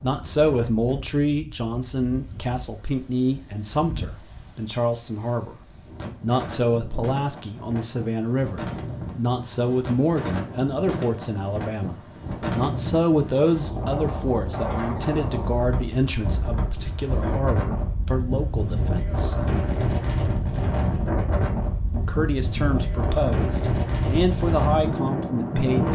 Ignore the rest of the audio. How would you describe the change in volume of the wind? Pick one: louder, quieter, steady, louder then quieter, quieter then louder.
louder.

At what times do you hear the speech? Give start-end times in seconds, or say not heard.
0.0-19.4, 21.9-25.9.